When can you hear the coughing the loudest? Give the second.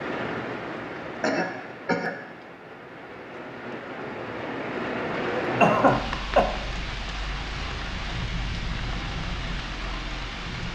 6 s.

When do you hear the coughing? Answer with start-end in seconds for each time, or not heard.
1.2-2.1, 5.6-6.5.